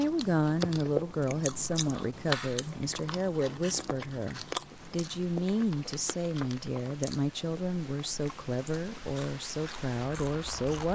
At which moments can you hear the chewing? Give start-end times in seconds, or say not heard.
0.0-10.9.